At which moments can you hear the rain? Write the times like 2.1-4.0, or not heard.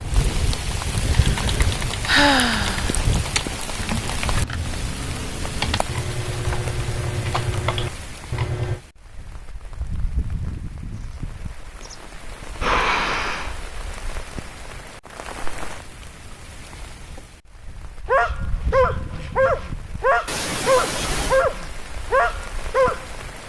0.0-23.4.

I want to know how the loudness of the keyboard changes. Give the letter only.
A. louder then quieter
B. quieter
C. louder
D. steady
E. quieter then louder
C.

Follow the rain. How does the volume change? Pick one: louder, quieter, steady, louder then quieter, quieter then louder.
quieter.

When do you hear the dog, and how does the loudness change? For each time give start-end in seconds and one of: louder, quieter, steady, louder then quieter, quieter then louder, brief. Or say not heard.
18.1-23.1 steady.